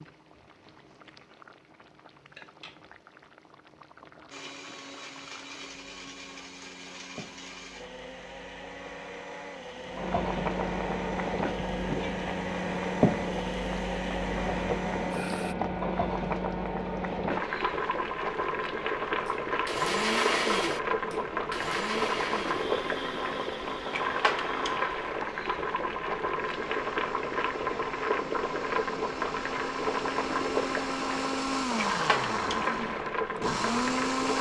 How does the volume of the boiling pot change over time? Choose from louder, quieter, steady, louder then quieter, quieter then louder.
louder.